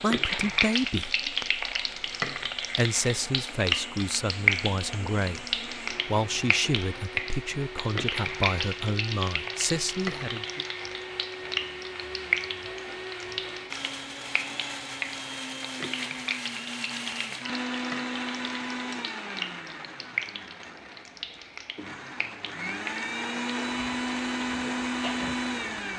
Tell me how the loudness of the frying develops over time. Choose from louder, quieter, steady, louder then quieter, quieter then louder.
quieter.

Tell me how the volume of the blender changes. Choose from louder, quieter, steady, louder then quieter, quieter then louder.
louder.